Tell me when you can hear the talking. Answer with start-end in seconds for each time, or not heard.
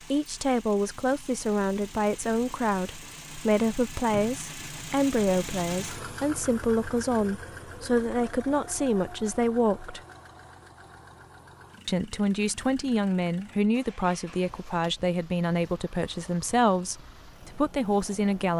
0.1-10.0, 11.8-18.5.